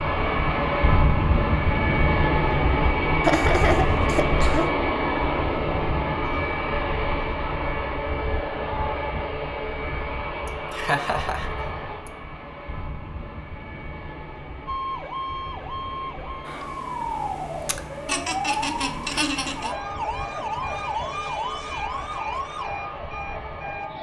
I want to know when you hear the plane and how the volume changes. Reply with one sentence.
You can hear the plane from 0.0 to 23.9 s, getting quieter.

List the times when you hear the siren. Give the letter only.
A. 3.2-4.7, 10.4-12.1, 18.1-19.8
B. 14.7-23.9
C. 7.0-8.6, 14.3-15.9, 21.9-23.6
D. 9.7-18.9
B.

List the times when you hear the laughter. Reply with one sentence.
The laughter can be heard from 3.2 to 4.7 s, from 10.4 to 12.1 s and from 18.1 to 19.8 s.